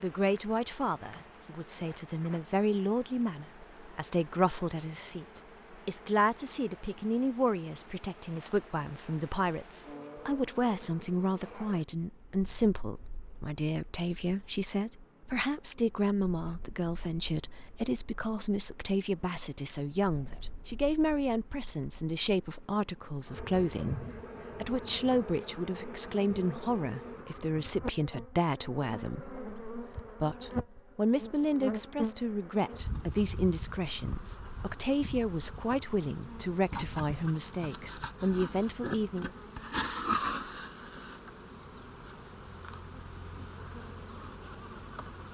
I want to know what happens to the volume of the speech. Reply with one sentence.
The volume of the speech stays about the same.